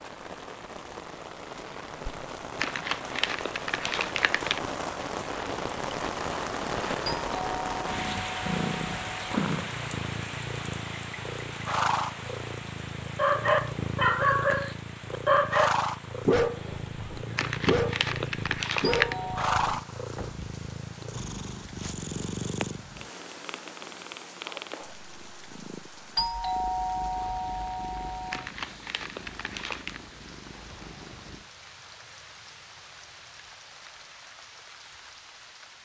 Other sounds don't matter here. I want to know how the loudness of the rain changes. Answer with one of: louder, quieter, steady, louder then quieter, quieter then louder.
quieter.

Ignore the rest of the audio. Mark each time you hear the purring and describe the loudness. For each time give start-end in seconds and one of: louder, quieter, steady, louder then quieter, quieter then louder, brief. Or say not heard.
7.8-31.5 quieter.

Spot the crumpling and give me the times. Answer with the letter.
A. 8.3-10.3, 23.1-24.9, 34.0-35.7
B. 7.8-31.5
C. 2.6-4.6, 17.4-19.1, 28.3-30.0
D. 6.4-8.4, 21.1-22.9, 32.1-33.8
C.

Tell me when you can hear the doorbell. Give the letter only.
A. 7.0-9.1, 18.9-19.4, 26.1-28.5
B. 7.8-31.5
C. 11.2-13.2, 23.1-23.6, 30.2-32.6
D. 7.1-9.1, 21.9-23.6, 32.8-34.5
A.